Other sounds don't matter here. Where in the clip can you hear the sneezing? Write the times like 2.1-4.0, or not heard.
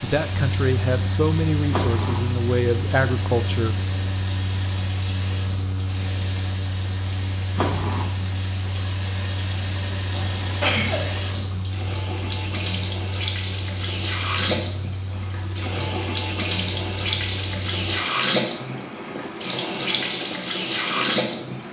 10.1-11.2.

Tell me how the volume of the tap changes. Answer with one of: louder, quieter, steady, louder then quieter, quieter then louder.
louder.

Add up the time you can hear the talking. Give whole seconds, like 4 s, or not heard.
4 s.